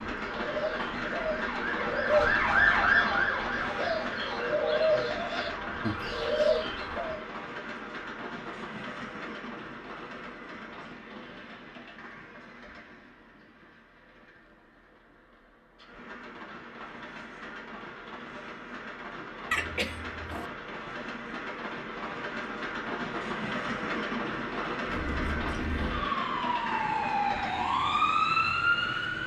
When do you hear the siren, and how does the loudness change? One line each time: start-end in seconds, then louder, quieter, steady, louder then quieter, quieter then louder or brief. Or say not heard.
0.1-7.2 louder then quieter
24.9-29.2 louder.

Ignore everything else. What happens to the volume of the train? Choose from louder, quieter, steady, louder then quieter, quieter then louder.
quieter then louder.